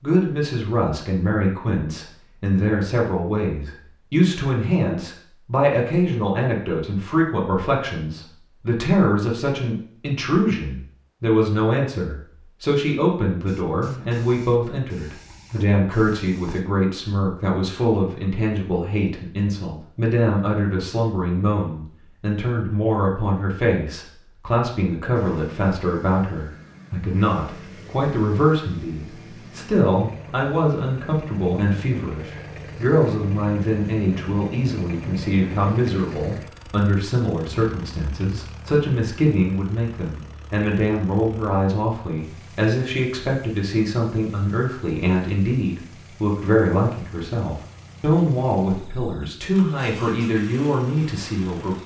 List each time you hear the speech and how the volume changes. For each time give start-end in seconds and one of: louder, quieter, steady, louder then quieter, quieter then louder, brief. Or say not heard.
0.0-51.8 steady.